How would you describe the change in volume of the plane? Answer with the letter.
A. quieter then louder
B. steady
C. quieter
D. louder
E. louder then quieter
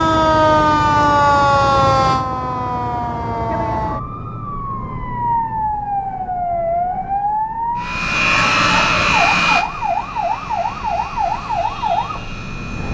C.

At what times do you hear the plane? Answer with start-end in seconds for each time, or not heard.
7.8-12.8.